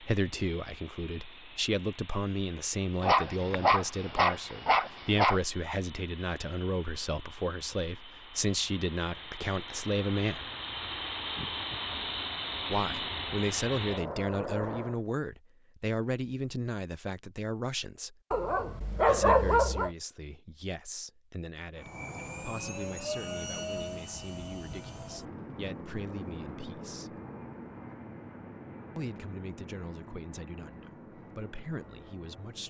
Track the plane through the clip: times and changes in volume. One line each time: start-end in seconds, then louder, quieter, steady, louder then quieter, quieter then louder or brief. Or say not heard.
0.0-15.0 louder
21.8-32.6 quieter.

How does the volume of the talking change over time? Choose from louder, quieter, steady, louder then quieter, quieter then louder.
quieter.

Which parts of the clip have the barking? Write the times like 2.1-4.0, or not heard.
3.0-5.4, 18.3-19.9.